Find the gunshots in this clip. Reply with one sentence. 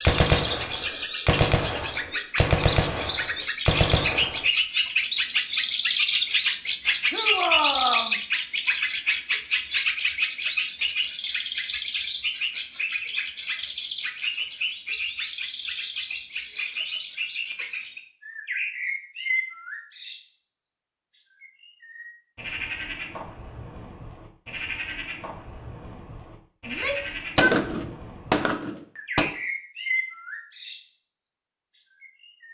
The gunshots can be heard from 0.1 to 4.5 s and from 27.4 to 29.2 s.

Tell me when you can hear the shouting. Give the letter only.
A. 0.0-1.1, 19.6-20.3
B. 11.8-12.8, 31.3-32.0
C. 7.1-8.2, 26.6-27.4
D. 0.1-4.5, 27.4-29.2
C.